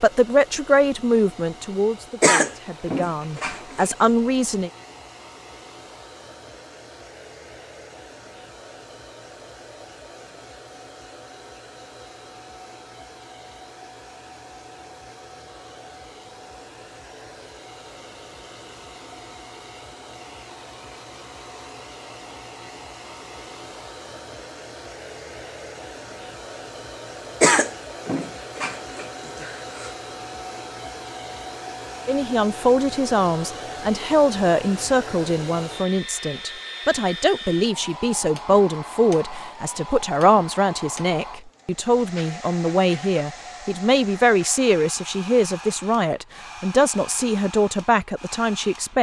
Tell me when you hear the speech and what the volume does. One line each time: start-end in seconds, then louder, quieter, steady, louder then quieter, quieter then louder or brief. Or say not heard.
0.0-4.7 quieter then louder
32.0-48.9 steady.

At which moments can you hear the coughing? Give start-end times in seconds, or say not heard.
2.2-3.9, 27.4-29.9.